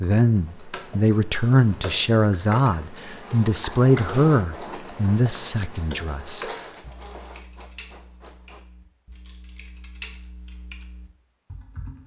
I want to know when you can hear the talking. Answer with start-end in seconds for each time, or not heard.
0.0-6.5.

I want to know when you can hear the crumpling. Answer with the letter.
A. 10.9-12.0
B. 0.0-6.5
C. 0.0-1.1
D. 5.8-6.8
D.